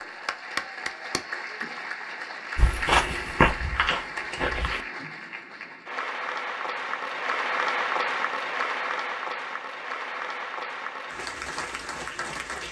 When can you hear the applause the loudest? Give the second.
8 s.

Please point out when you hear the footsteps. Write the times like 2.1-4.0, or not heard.
2.5-4.8.